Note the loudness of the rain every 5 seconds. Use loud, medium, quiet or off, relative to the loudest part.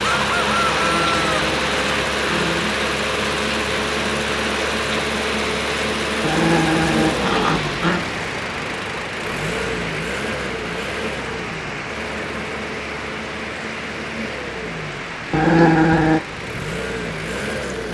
loud, loud, medium, medium.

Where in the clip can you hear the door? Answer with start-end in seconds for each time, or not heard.
not heard.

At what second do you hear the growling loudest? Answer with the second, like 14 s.
16 s.